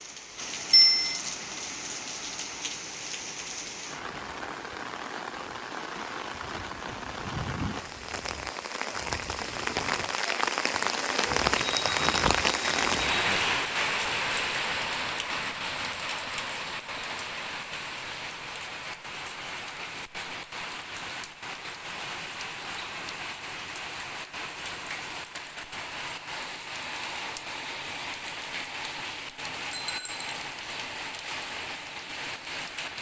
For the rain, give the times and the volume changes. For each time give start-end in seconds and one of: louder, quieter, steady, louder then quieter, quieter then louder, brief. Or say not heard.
0.0-32.9 louder then quieter.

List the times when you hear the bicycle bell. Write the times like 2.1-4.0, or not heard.
0.7-1.2, 11.6-13.2, 29.7-30.4.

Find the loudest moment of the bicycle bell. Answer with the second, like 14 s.
1 s.